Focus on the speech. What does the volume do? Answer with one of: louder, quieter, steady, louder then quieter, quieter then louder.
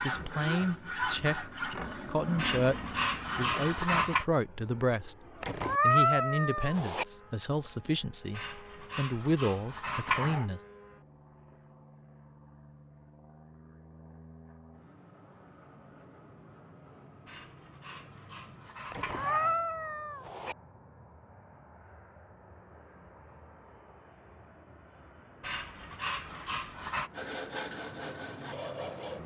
steady.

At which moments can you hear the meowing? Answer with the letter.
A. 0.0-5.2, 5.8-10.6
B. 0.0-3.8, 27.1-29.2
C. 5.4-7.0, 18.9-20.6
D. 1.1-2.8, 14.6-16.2
C.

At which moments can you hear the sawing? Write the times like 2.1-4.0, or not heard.
0.0-3.8, 27.1-29.2.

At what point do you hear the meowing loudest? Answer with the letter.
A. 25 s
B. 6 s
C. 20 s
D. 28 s
B.